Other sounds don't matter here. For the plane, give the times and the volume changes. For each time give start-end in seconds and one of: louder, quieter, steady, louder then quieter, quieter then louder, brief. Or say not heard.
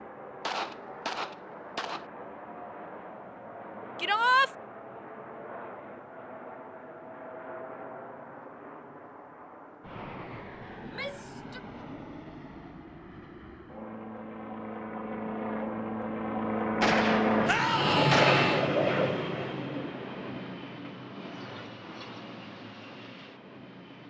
0.0-24.0 louder then quieter.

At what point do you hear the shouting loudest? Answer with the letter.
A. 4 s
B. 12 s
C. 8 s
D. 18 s
A.